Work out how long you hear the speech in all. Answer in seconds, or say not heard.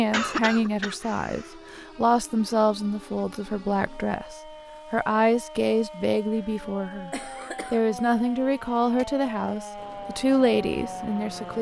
11 s.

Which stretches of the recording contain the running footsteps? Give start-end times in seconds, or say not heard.
not heard.